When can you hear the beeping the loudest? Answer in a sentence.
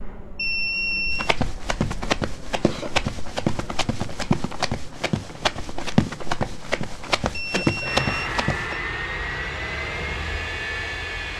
The volume of the beeping peaks at 1 second.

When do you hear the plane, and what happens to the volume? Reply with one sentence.
The plane can be heard from 0.0 to 11.3 s, getting louder.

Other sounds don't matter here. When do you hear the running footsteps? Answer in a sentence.
The running footsteps can be heard from 1.1 to 8.8 s.